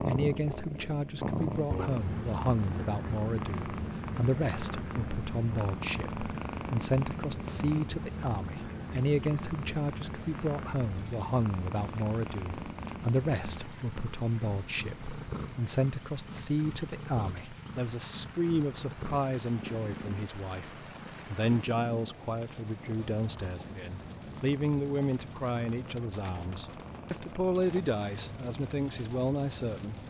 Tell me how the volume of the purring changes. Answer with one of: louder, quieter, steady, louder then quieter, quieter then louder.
quieter.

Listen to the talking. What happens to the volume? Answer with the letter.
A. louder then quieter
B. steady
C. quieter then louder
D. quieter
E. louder
B.